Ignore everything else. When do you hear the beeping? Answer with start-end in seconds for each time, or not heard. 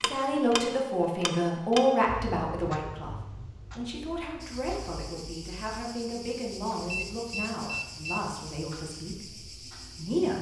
6.9-8.3.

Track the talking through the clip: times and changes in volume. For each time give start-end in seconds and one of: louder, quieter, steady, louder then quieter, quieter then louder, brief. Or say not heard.
0.1-10.3 quieter.